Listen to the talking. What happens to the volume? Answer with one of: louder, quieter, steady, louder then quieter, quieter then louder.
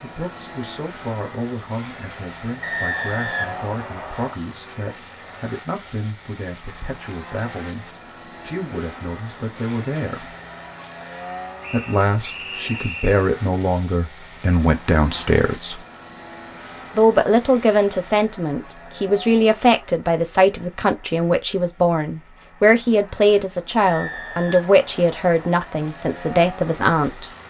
louder.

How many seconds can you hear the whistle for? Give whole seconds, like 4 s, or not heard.
5 s.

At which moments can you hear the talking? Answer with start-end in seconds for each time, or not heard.
0.0-10.3, 11.7-15.8, 16.9-27.3.